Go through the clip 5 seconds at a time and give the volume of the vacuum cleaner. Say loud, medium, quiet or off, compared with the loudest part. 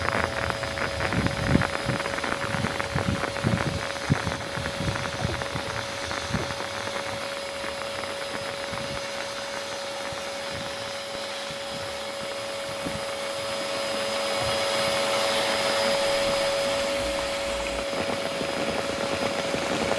medium, medium, loud, loud.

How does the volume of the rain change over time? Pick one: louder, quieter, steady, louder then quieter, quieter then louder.
quieter then louder.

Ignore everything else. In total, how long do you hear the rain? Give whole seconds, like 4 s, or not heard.
20 s.